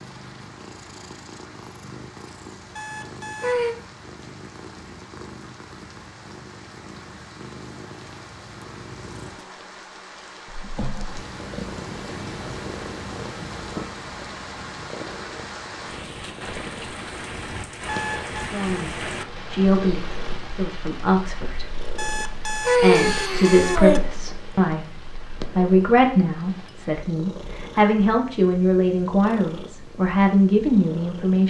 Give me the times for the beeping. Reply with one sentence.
The beeping can be heard from 2.8 to 3.8 s, from 17.9 to 18.4 s and from 21.9 to 24.0 s.